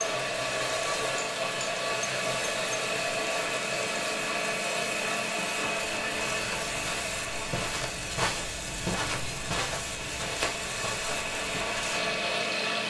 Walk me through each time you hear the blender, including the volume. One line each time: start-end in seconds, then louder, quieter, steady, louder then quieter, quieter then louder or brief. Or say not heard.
0.0-12.8 quieter then louder.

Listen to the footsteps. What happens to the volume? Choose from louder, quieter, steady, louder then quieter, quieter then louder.
louder then quieter.